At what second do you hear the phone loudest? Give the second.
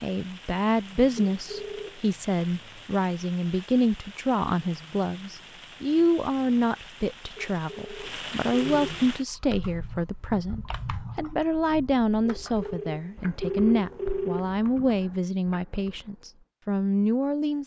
14 s.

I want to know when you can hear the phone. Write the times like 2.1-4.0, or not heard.
1.2-2.0, 7.3-8.9, 12.2-14.6.